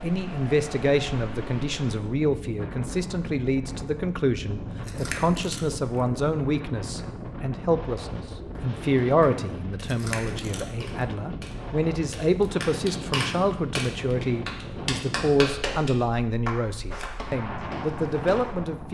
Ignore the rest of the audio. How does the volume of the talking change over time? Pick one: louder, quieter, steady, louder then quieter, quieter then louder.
steady.